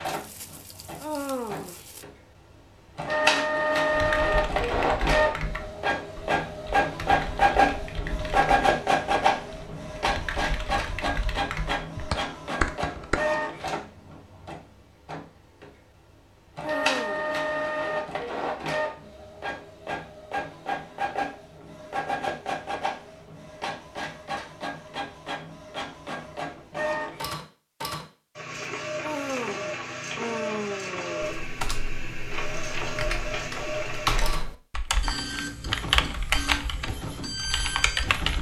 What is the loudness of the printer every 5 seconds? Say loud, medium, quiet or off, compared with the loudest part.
loud, loud, medium, medium, medium, medium, medium, medium.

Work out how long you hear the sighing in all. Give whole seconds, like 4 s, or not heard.
4 s.